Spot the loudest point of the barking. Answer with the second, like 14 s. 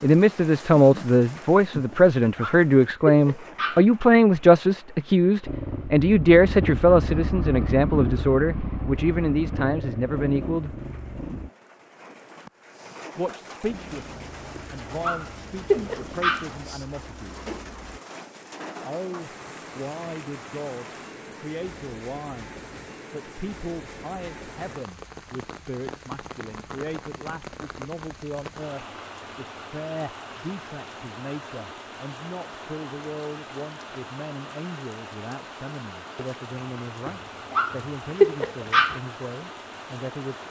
38 s.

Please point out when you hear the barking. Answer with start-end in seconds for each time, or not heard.
1.9-3.9, 14.6-16.5, 37.0-39.0.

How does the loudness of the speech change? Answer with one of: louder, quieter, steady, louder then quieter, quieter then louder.
quieter.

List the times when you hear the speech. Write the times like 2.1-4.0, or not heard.
0.0-10.7, 13.2-17.4, 18.8-40.4.